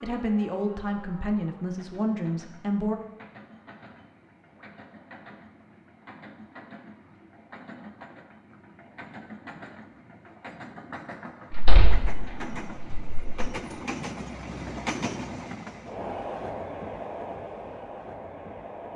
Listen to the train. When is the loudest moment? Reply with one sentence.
The loudest moment of the train is at 15 seconds.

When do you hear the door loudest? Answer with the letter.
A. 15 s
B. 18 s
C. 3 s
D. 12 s
D.